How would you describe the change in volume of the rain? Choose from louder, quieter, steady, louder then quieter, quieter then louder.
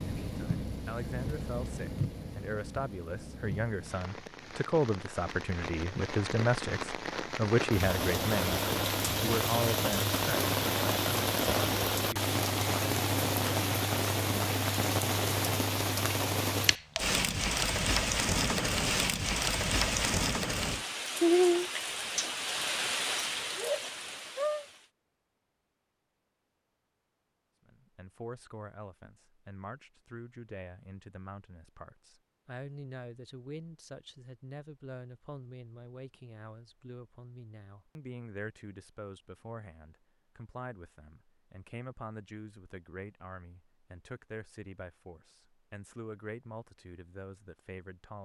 louder.